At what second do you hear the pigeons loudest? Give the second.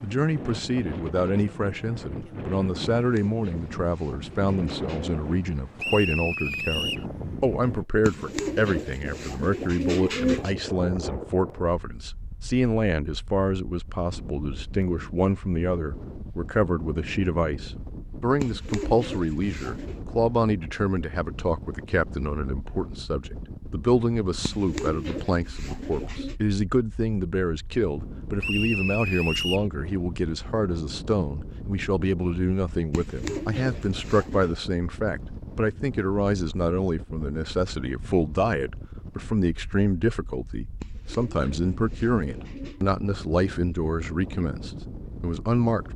10 s.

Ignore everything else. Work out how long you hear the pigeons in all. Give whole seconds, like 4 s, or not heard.
12 s.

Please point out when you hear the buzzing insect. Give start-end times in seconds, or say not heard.
not heard.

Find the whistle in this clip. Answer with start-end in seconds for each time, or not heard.
5.8-7.0, 28.4-29.7.